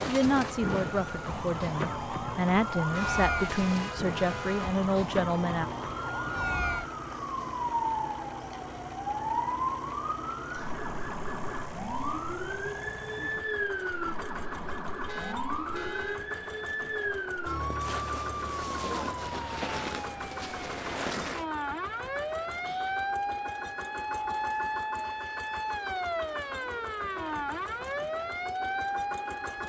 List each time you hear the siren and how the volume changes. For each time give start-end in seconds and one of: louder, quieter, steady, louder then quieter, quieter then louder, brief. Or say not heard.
0.0-29.6 steady.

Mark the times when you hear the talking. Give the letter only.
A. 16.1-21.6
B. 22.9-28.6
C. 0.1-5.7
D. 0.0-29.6
C.